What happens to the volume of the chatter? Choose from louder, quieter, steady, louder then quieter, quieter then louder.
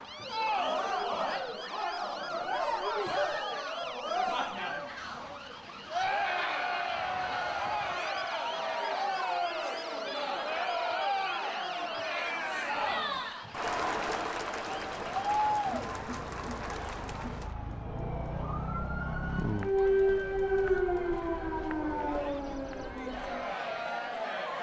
quieter.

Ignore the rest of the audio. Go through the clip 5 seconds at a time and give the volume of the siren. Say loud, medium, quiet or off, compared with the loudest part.
quiet, quiet, quiet, loud, loud.